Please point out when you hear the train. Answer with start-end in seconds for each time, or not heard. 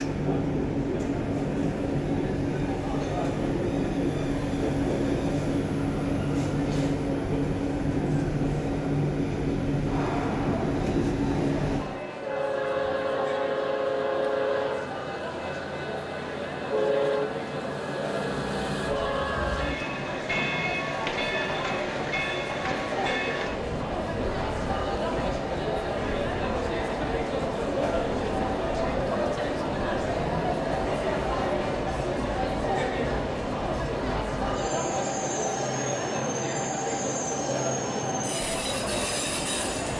0.0-39.9.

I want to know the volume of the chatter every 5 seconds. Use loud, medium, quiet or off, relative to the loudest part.
medium, medium, medium, medium, loud, loud, loud, loud.